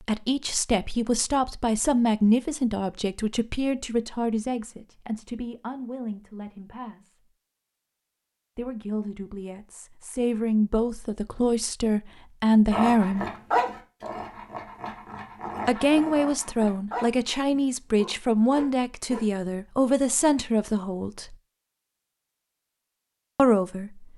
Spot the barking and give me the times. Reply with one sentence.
The barking can be heard from 12.7 to 19.2 s.